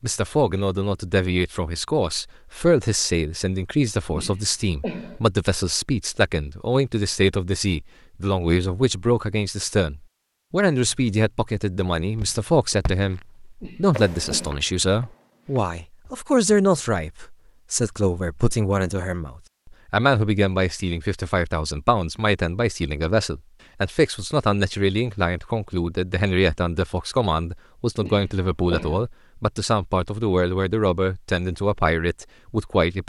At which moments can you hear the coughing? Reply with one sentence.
The coughing can be heard from 4.1 to 5.2 s, from 13.6 to 14.6 s and from 28.0 to 29.1 s.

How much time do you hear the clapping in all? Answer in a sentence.
You can't hear the clapping here.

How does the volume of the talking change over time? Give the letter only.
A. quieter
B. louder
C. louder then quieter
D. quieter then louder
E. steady
E.